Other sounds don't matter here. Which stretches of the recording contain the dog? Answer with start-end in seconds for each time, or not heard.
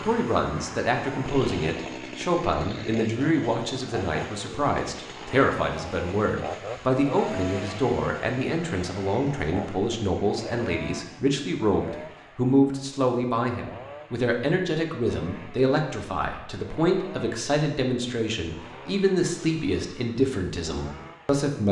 not heard.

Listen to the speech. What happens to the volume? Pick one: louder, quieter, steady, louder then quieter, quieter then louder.
steady.